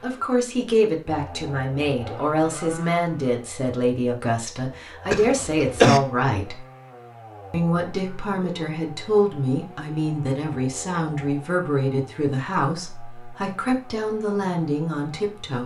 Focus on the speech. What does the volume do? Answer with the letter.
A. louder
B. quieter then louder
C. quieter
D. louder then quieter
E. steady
E.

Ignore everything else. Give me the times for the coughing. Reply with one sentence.
The coughing can be heard from 5.1 to 6.0 s.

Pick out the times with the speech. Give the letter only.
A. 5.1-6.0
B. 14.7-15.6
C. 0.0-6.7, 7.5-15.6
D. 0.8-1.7
C.